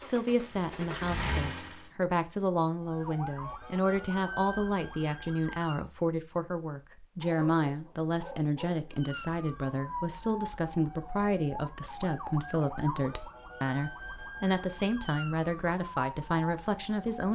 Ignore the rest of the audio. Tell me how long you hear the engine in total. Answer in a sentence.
You can hear the engine for 2 seconds altogether.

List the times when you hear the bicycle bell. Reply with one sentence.
The bicycle bell can't be heard in this clip.